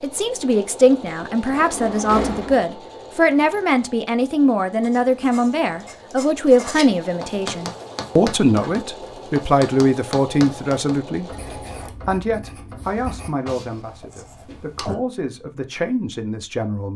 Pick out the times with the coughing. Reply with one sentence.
You can't hear the coughing here.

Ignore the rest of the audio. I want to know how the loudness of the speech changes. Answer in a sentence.
The volume of the speech goes down.